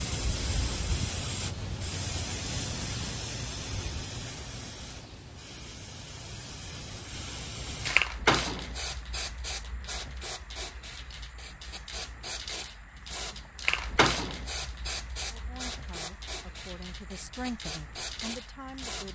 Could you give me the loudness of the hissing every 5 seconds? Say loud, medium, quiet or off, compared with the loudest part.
loud, loud, loud, medium.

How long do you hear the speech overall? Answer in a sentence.
The speech can be heard for 4 seconds in total.